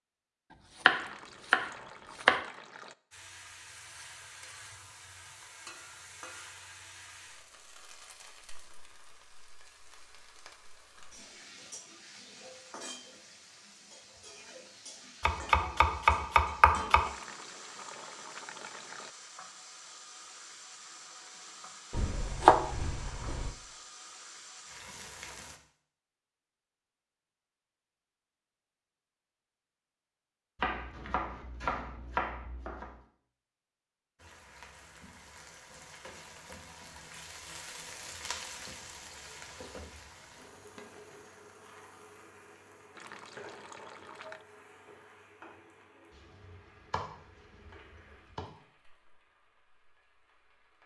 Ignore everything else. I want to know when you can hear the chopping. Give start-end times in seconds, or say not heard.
0.8-2.4, 15.2-17.1, 21.9-23.6, 30.6-33.0, 46.1-48.5.